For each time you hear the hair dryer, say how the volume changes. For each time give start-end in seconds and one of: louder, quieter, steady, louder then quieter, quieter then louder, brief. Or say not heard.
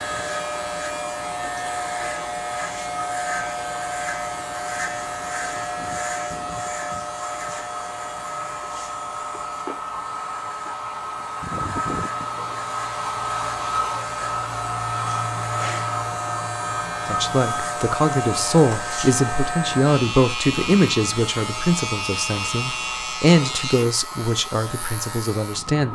0.0-25.9 louder then quieter.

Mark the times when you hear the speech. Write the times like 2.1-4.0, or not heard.
17.1-25.9.